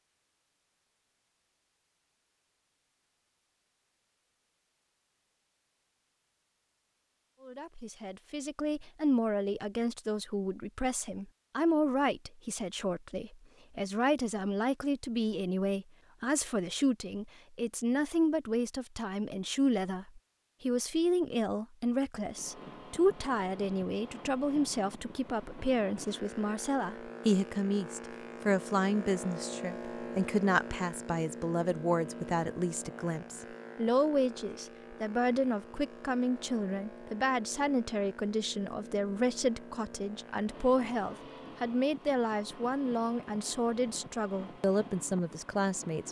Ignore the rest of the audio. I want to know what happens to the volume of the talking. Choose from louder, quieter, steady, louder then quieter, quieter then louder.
steady.